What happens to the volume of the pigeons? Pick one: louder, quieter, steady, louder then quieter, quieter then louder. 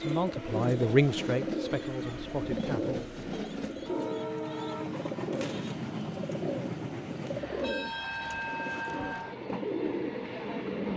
steady.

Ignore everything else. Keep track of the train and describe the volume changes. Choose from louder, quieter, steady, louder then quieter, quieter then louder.
steady.